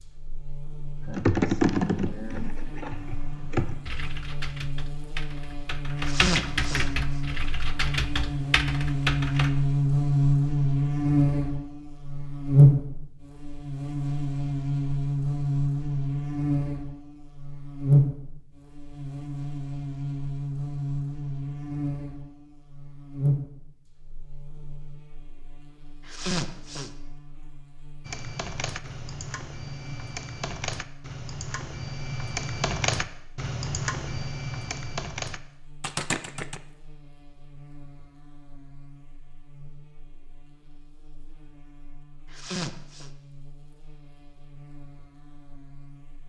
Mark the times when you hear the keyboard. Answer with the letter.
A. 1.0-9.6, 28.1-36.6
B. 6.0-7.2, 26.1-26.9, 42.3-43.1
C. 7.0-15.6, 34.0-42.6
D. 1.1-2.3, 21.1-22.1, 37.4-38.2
A.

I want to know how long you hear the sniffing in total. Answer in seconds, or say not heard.
3 s.